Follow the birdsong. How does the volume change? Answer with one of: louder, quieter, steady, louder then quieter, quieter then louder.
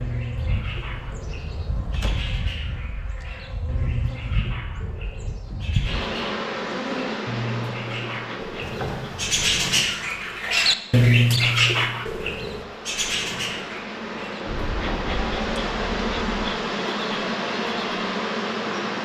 louder then quieter.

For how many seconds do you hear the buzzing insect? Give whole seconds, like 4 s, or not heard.
19 s.